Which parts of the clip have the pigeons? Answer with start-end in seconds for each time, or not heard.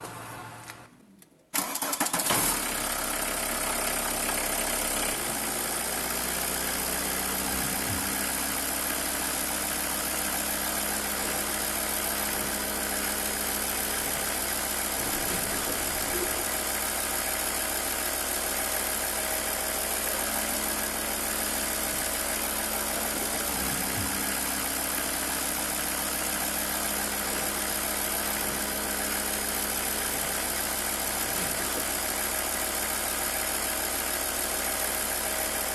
14.9-16.6.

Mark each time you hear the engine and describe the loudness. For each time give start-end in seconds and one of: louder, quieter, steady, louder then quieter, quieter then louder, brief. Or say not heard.
0.0-35.7 steady.